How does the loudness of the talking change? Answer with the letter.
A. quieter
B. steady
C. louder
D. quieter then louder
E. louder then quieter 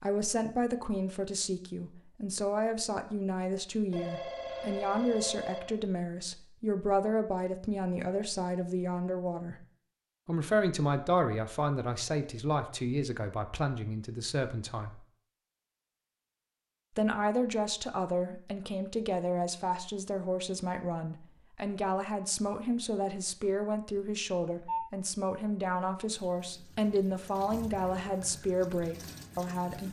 B.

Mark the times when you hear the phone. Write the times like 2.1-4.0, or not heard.
3.9-5.8, 24.4-24.9.